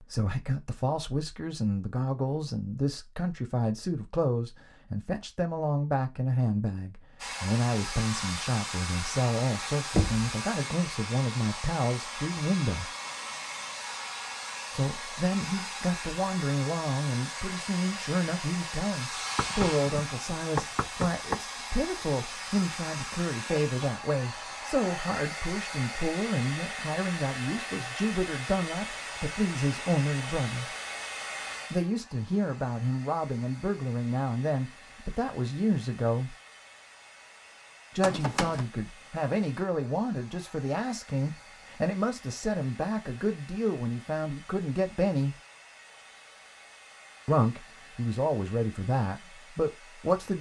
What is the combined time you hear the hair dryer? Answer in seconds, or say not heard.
43 s.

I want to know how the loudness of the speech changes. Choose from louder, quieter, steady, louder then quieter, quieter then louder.
steady.